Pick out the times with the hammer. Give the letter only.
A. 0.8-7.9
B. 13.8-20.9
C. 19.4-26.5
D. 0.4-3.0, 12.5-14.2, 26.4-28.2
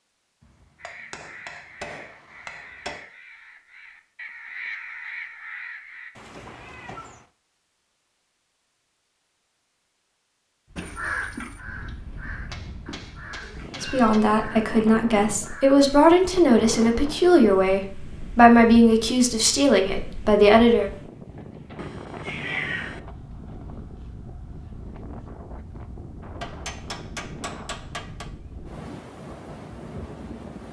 D.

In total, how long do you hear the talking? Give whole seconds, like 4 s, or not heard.
7 s.